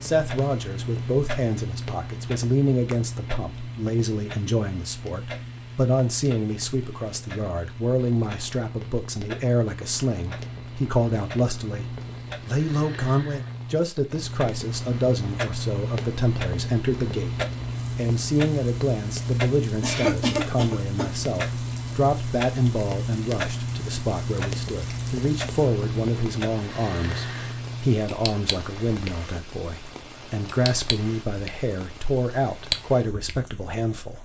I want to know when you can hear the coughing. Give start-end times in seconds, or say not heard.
19.8-21.1.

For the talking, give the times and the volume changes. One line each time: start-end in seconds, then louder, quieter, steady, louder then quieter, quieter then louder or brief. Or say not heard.
0.0-34.1 steady.